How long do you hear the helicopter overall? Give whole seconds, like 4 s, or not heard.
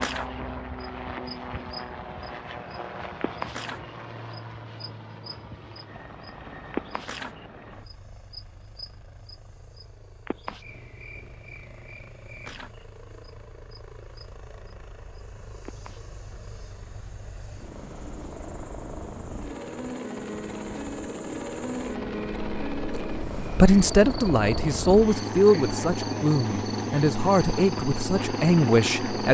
29 s.